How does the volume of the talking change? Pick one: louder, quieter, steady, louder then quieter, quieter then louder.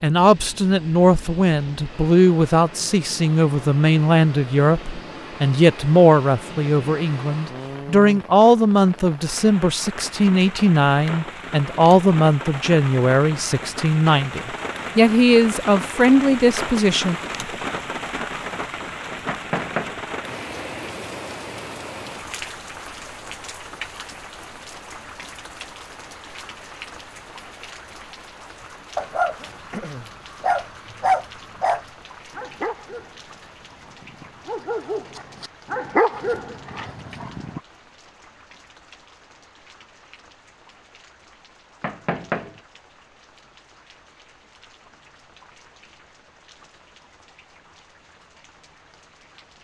steady.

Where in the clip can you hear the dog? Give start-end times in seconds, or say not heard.
28.9-37.6.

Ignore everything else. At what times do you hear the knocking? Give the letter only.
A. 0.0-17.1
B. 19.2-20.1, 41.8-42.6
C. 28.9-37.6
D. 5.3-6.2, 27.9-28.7
B.